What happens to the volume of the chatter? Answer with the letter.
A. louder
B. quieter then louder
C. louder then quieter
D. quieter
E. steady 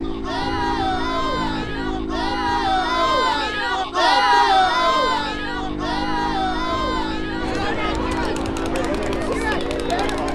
C.